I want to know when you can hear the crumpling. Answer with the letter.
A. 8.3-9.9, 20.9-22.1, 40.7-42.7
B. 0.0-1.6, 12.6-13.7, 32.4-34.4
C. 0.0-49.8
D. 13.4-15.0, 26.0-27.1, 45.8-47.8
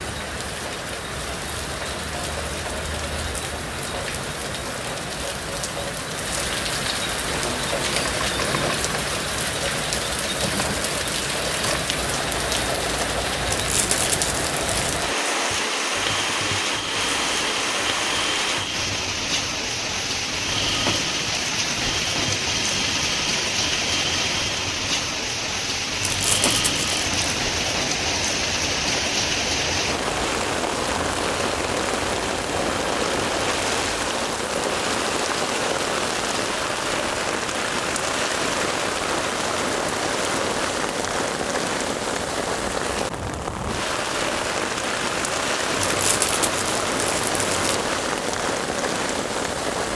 D.